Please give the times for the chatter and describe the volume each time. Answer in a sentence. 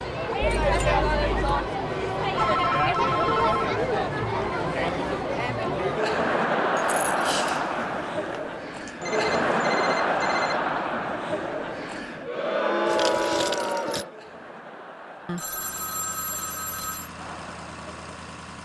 The chatter can be heard from 0.0 to 18.6 s, getting quieter.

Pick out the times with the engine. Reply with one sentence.
The engine can be heard from 15.4 to 18.6 s.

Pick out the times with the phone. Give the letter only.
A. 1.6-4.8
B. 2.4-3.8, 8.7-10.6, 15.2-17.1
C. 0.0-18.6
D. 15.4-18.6
B.